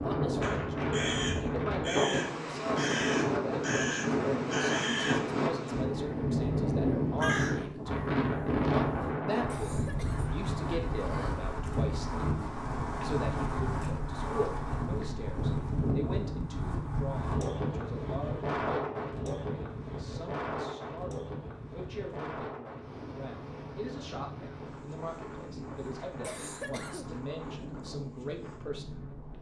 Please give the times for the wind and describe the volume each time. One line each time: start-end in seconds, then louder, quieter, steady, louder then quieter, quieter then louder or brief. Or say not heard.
0.0-29.3 quieter.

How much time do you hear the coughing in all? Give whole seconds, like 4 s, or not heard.
2 s.